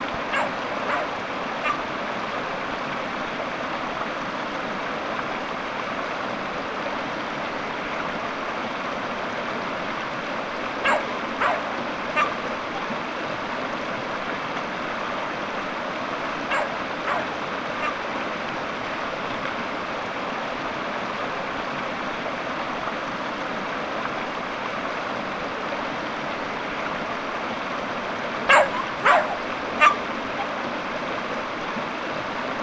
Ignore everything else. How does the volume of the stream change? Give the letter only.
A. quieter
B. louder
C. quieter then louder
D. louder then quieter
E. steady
E.